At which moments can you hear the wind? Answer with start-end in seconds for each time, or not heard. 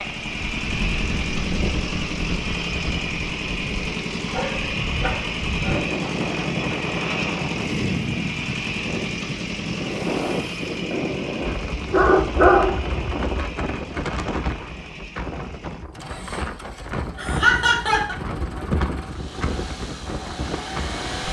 0.0-21.2.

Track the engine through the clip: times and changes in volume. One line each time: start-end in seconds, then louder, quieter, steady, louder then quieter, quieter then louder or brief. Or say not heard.
0.0-21.2 quieter.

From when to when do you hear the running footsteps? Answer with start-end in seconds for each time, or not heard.
not heard.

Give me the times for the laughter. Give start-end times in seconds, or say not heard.
17.1-18.1.